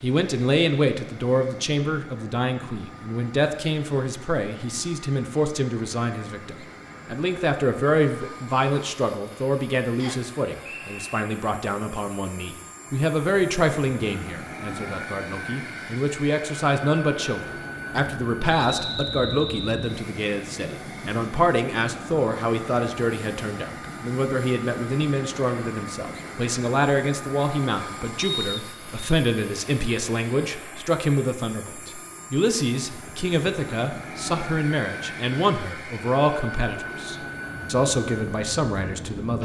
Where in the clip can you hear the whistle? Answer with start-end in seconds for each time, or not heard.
9.9-11.2, 18.6-20.0, 28.1-29.1.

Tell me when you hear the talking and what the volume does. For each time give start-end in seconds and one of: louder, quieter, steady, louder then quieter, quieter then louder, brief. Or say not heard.
0.0-39.3 steady.